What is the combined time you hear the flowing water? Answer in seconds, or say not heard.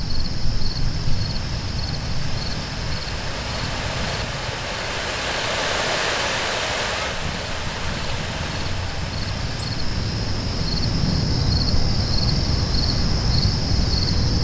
14 s.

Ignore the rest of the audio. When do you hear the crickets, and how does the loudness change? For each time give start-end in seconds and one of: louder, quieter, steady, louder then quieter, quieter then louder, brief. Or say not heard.
0.0-14.3 quieter then louder.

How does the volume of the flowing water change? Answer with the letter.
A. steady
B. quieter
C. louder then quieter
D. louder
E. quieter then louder
C.